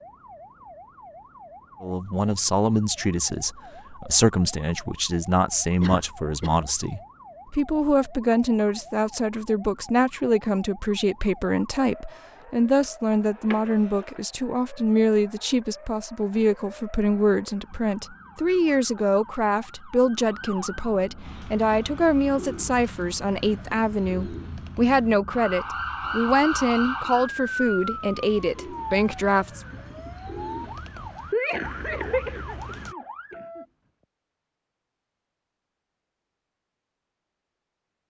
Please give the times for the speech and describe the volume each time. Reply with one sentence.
The speech can be heard from 1.8 to 29.6 s, at a steady volume.